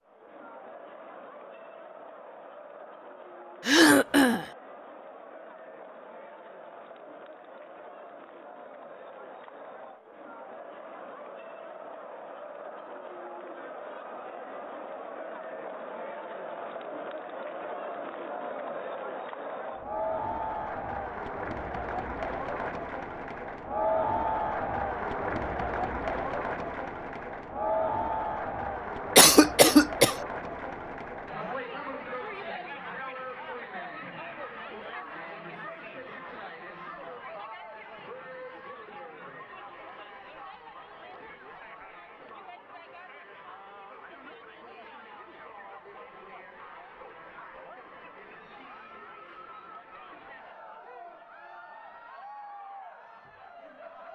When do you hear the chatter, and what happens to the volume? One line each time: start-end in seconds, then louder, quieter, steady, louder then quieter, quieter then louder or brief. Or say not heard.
0.0-54.1 louder then quieter.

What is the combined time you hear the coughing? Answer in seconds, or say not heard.
2 s.